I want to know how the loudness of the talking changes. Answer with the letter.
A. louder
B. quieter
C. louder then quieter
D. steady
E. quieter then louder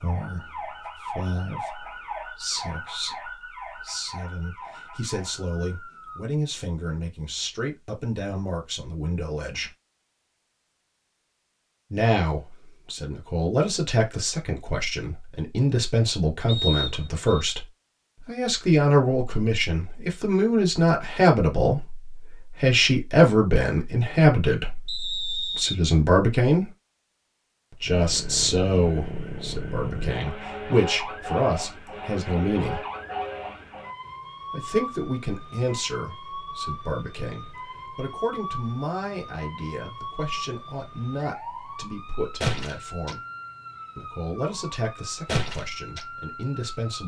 C.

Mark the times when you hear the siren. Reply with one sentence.
You can hear the siren from 0.0 to 6.2 s and from 27.9 to 47.0 s.